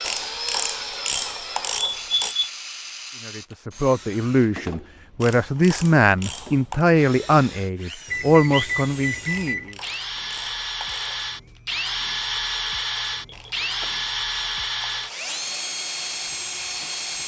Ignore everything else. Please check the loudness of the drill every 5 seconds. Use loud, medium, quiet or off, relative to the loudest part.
medium, medium, loud, loud.